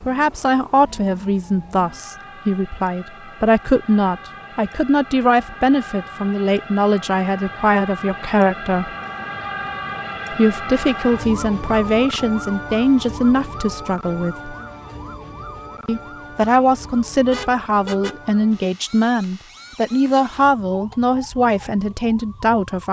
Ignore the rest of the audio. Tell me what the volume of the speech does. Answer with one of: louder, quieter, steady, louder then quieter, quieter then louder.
steady.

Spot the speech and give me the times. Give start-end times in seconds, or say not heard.
0.0-8.9, 10.3-14.5, 15.8-22.8.